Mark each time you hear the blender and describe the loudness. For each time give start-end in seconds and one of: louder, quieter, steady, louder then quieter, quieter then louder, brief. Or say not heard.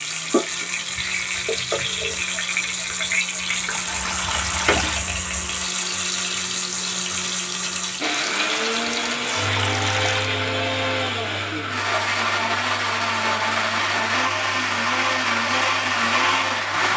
0.0-16.9 louder.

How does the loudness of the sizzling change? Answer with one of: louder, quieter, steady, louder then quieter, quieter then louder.
quieter.